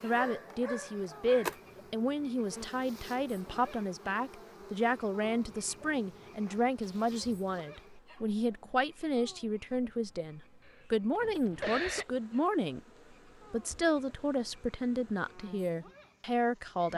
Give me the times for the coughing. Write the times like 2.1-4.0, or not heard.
10.7-12.1.